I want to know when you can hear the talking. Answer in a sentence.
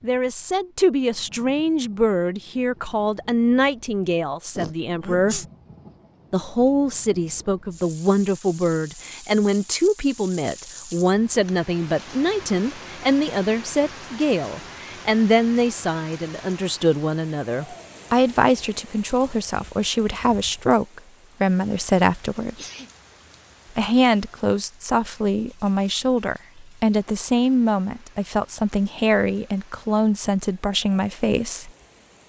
You can hear the talking from 0.0 to 5.5 s, from 6.3 to 22.7 s and from 23.8 to 31.7 s.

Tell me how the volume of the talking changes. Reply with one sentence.
The loudness of the talking stays about the same.